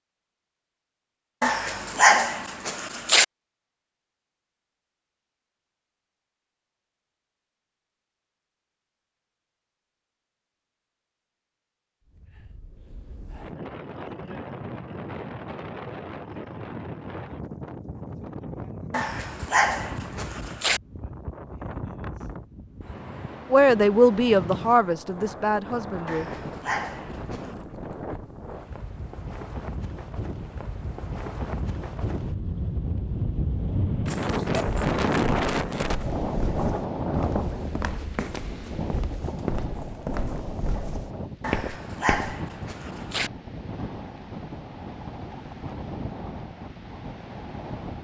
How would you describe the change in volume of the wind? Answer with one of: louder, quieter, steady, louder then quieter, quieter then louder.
louder then quieter.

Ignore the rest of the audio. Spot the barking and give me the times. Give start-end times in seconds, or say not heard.
1.4-3.2, 18.9-20.8, 26.1-27.6, 41.4-43.3.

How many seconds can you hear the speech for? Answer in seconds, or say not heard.
3 s.